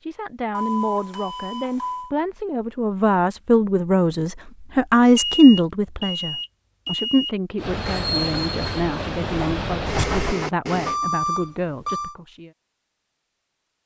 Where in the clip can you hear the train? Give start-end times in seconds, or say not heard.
7.5-10.9.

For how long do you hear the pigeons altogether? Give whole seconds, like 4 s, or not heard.
not heard.